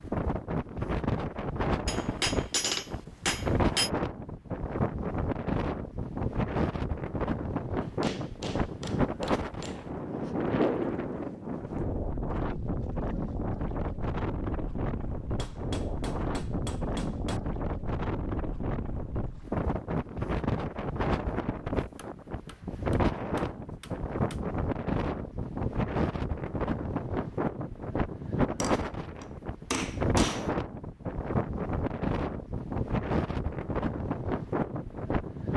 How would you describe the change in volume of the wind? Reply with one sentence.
The loudness of the wind stays about the same.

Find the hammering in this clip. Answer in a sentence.
You can hear the hammering from 1.9 to 3.9 s, from 7.8 to 9.9 s, from 15.3 to 17.4 s, from 21.9 to 24.4 s and from 28.6 to 30.5 s.